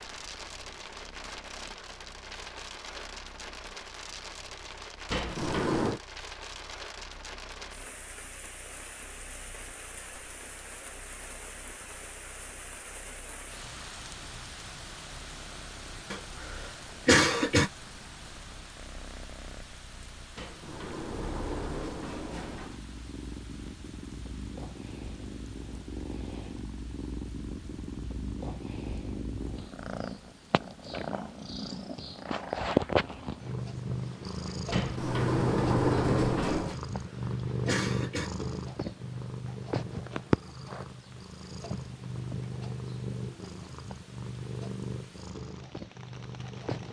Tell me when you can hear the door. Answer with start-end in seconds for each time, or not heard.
5.1-6.0, 20.4-22.8, 34.7-36.8.